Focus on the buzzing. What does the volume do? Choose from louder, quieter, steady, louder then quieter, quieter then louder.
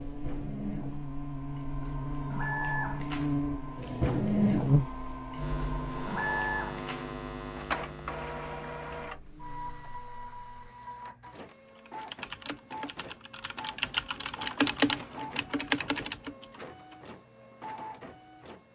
louder then quieter.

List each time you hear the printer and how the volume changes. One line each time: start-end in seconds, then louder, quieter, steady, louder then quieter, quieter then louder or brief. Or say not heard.
0.0-18.7 louder then quieter.